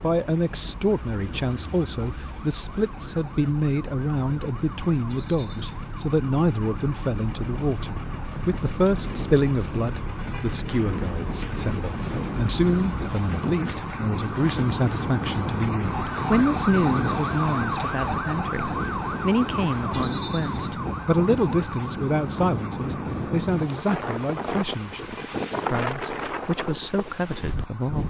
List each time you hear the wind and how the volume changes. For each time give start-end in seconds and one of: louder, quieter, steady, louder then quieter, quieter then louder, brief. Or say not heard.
0.0-28.0 louder.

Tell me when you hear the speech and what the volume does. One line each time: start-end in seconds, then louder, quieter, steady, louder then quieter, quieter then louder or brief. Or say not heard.
0.0-28.0 steady.